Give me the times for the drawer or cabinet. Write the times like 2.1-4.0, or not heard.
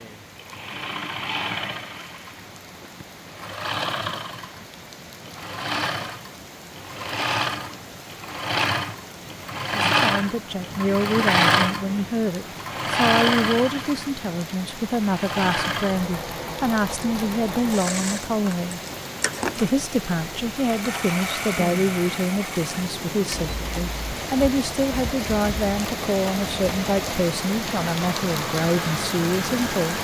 not heard.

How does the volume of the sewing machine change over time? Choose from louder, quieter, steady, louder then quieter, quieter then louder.
louder then quieter.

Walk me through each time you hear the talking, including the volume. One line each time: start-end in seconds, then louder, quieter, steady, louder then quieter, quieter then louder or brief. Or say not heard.
9.9-18.8 steady
19.6-29.9 steady.